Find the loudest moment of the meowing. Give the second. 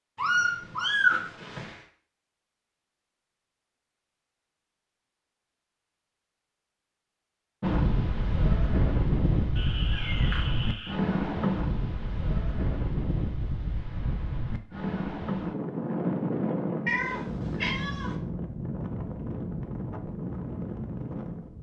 1 s.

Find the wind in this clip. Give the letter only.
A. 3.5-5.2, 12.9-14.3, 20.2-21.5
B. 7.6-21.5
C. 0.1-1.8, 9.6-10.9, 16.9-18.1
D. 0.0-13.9
B.